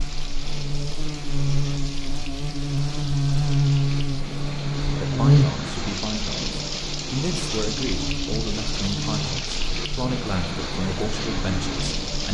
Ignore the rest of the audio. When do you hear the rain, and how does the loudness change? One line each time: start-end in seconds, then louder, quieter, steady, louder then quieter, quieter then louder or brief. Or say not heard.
0.0-12.3 louder.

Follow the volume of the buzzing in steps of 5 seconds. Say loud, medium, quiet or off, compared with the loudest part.
loud, loud, medium.